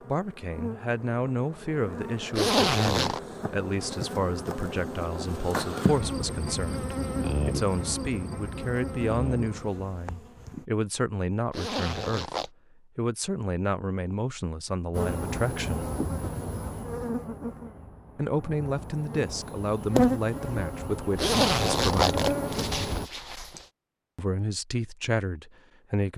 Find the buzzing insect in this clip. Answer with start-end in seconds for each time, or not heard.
0.0-10.7, 14.9-23.1.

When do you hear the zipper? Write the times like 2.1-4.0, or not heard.
2.3-3.2, 11.5-12.5, 21.1-23.6.